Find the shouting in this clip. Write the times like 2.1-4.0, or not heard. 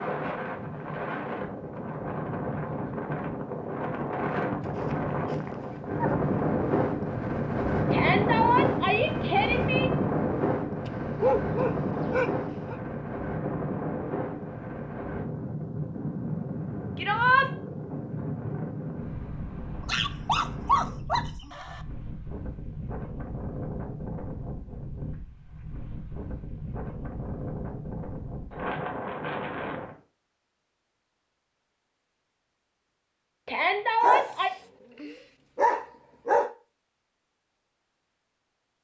7.9-9.9, 16.9-17.5, 33.5-34.5.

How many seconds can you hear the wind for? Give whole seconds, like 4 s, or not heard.
30 s.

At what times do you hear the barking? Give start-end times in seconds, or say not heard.
4.6-6.2, 10.8-12.8, 19.9-21.8, 34.0-36.5.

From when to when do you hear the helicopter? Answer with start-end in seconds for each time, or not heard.
not heard.